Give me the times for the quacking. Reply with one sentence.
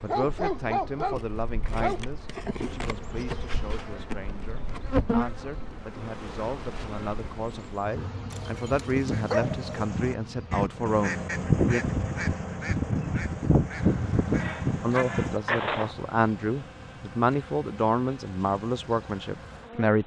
The quacking can be heard from 8.8 to 15.9 s.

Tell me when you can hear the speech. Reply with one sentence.
The speech can be heard from 0.0 to 11.8 s and from 14.8 to 20.0 s.